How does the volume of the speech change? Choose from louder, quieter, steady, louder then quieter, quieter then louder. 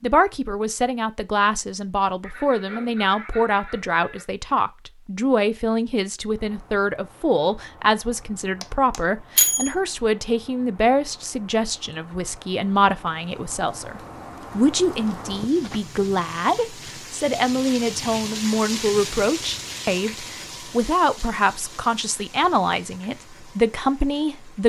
steady.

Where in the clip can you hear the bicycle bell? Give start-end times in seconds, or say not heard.
8.6-9.7.